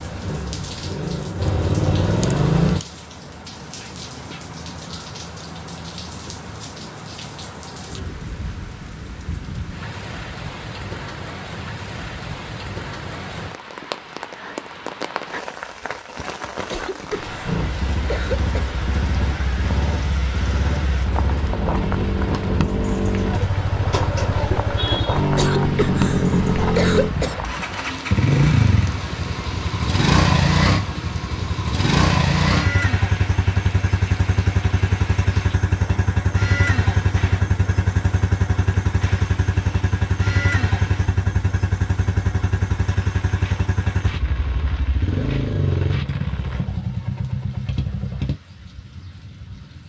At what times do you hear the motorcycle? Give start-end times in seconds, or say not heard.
0.0-2.8, 17.4-48.4.